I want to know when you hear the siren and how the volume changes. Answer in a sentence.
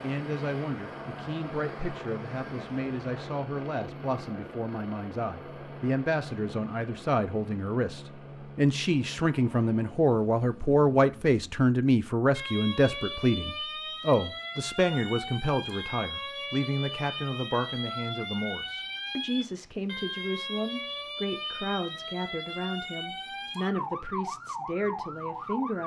The siren can be heard from 12.3 to 25.8 s, at a steady volume.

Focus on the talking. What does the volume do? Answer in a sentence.
The loudness of the talking goes up, then down.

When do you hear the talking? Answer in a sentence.
You can hear the talking from 0.0 to 25.8 s.